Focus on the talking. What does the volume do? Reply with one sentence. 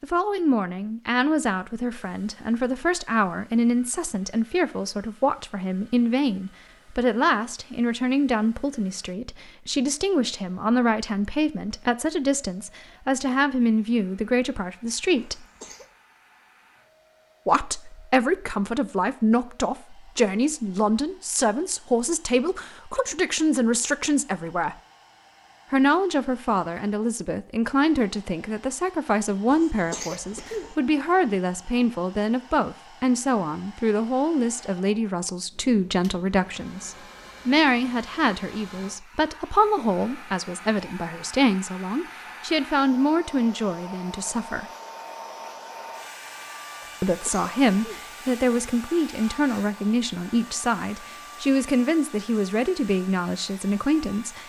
The volume of the talking stays about the same.